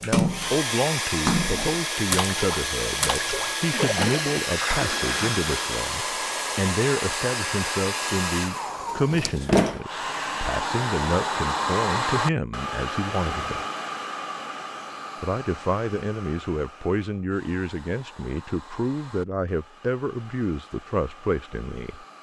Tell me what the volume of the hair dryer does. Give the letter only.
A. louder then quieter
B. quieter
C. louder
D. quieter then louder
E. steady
B.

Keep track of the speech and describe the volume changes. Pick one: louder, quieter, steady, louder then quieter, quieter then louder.
steady.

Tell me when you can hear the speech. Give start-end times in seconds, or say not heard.
0.0-13.7, 15.2-22.1.